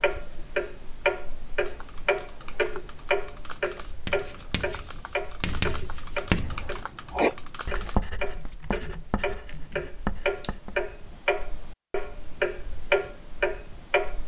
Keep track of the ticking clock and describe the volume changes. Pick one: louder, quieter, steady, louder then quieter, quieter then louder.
quieter then louder.